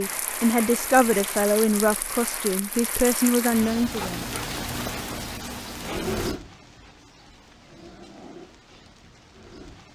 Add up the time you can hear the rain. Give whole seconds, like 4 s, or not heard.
10 s.